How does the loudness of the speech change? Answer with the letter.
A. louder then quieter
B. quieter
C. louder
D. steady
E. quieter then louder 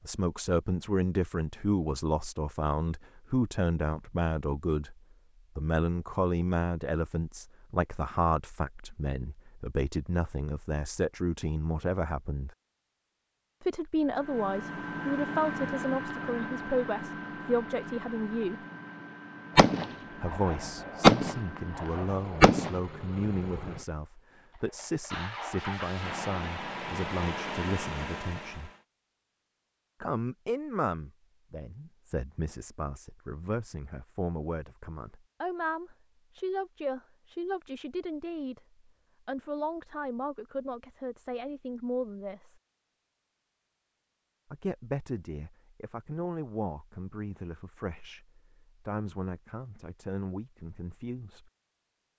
B.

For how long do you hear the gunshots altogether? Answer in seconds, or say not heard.
3 s.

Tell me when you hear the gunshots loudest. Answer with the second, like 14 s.
21 s.